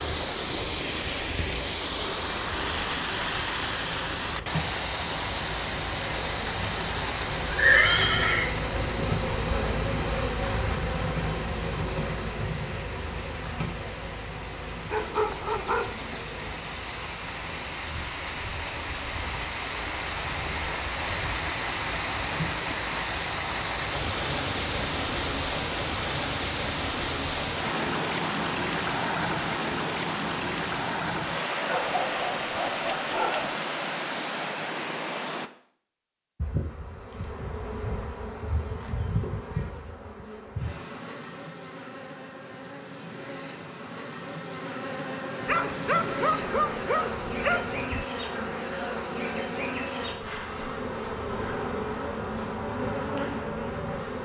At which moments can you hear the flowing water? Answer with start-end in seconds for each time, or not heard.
0.0-35.5.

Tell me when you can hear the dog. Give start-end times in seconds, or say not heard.
14.9-16.2, 31.6-33.5, 45.5-48.0.